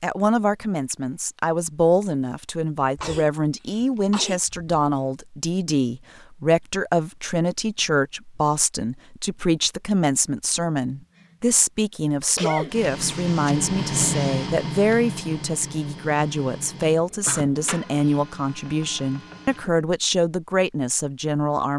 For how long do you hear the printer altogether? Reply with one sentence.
You can hear the printer for 7 seconds altogether.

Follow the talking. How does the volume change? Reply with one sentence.
The loudness of the talking stays about the same.